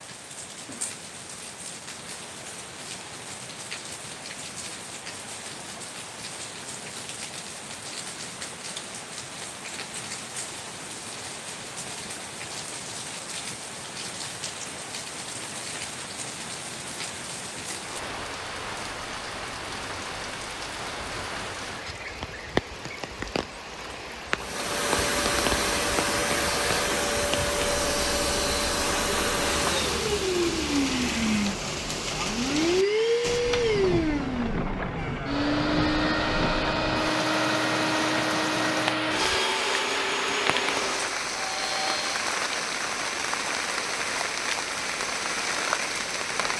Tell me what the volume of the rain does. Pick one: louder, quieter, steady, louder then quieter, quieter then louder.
louder.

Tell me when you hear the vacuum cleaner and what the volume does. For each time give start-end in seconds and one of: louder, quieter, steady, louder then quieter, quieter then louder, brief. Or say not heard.
24.4-42.1 steady.